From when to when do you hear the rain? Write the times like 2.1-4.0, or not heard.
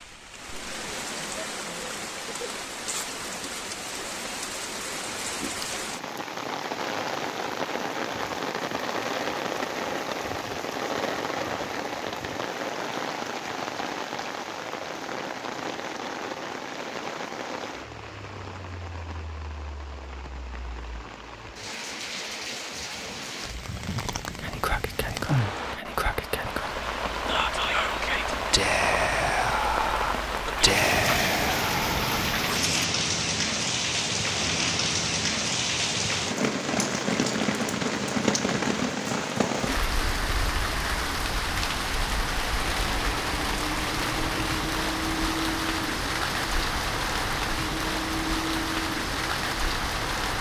0.0-50.3.